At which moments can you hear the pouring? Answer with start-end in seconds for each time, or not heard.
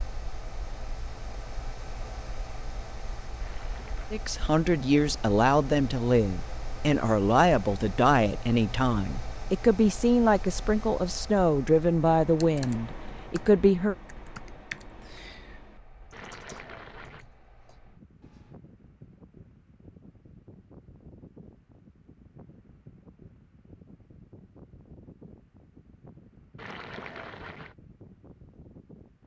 3.4-4.2, 16.1-17.2, 26.6-27.8.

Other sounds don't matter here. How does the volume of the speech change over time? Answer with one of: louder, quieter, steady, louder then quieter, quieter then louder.
steady.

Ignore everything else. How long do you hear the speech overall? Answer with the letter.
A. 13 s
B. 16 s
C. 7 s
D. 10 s
D.